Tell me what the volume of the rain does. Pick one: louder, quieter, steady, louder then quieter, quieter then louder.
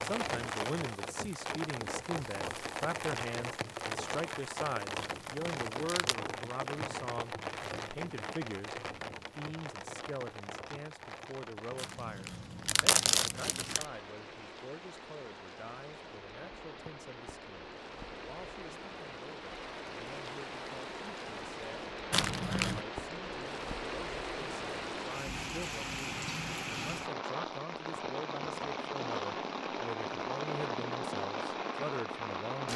quieter then louder.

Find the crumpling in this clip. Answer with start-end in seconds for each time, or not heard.
5.0-6.2, 11.8-13.8, 22.1-22.9.